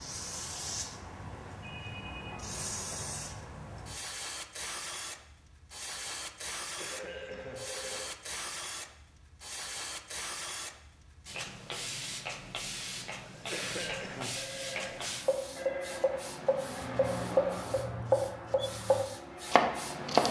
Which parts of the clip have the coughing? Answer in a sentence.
You can hear the coughing from 6.6 to 7.7 s and from 13.2 to 14.4 s.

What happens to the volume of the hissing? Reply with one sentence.
The loudness of the hissing stays about the same.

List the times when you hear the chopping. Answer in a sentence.
You can hear the chopping from 15.2 to 20.2 s.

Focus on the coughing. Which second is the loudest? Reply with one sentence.
The volume of the coughing peaks at 14 seconds.